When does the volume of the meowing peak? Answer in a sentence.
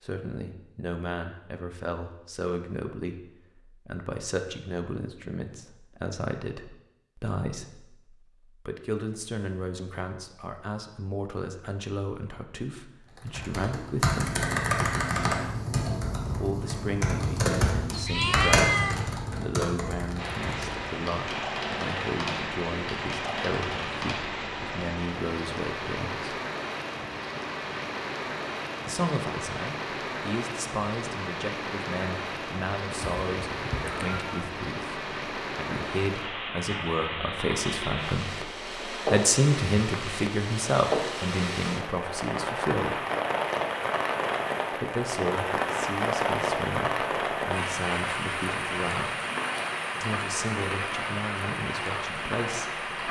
The loudest moment of the meowing is at 19 seconds.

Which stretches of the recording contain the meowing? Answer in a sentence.
You can hear the meowing from 17.9 to 19.0 s and from 33.0 to 34.4 s.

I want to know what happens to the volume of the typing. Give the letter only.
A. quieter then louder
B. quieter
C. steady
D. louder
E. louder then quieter
B.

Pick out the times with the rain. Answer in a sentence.
You can hear the rain from 20.1 to 53.0 s.